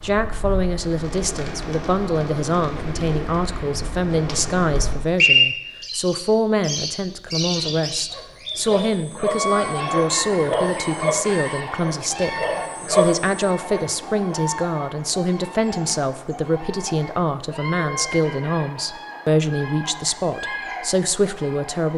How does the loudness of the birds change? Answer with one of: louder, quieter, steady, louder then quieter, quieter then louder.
louder then quieter.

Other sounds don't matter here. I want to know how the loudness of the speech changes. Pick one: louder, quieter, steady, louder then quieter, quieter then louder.
steady.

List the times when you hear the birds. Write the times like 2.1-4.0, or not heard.
0.0-21.9.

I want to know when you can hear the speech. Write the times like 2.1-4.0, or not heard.
0.0-21.9.